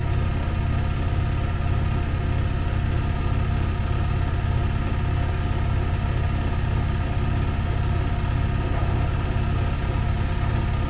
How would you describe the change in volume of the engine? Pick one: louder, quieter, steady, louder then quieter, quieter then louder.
steady.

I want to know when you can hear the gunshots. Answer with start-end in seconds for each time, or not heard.
8.7-9.2.